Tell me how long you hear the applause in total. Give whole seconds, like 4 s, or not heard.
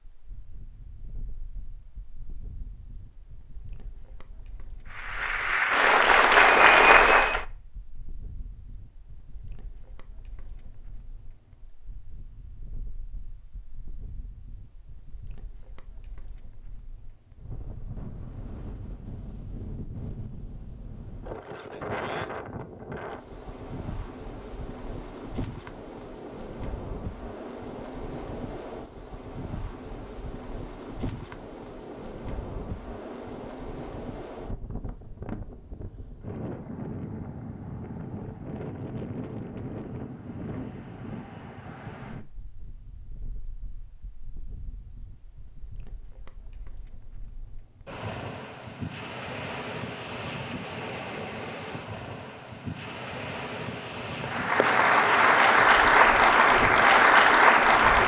6 s.